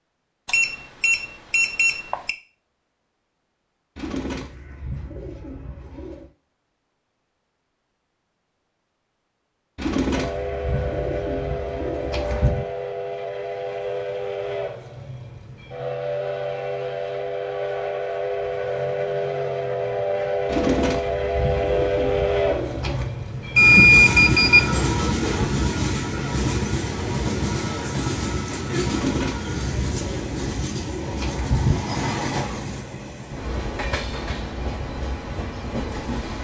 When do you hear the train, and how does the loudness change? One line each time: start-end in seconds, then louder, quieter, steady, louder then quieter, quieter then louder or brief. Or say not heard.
10.2-36.3 louder then quieter.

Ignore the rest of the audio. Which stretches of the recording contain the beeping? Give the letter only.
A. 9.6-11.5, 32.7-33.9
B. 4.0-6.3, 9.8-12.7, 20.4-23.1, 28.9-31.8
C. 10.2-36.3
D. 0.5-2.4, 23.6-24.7
D.